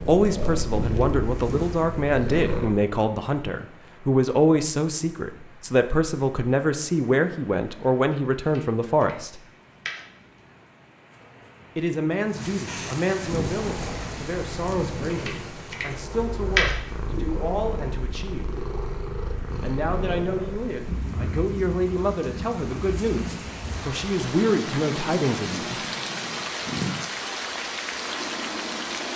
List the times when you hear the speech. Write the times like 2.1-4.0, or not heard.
0.0-9.4, 11.8-18.6, 19.6-25.8.